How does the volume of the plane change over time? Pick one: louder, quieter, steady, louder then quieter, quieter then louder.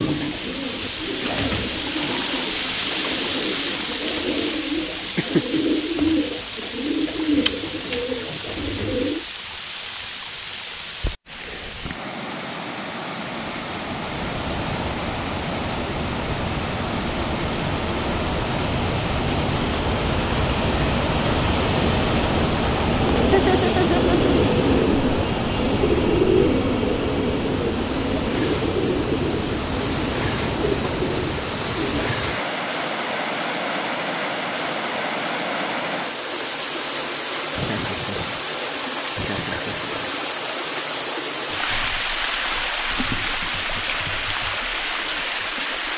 louder then quieter.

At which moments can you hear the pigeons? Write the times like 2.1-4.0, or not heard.
0.0-9.2, 23.0-32.1.